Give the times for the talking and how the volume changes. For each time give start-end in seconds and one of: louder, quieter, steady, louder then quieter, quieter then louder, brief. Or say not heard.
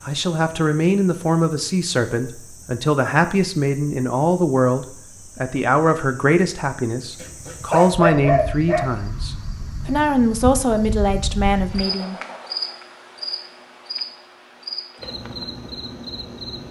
0.1-12.2 steady.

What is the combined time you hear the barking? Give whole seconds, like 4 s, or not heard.
2 s.